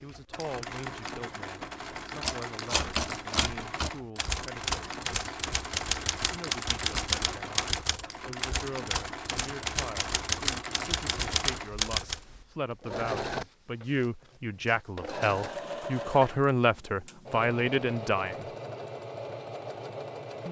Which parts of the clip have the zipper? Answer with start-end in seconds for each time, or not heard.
not heard.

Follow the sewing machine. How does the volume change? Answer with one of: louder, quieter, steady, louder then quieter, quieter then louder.
steady.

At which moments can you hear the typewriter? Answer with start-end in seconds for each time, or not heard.
2.2-12.2.